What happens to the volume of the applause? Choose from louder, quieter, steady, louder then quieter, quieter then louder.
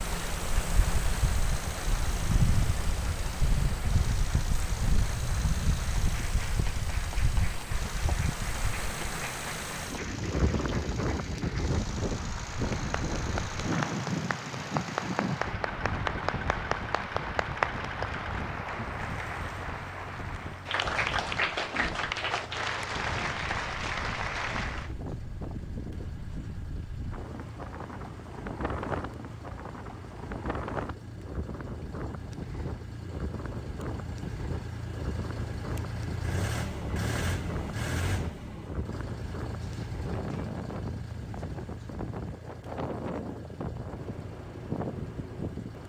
louder.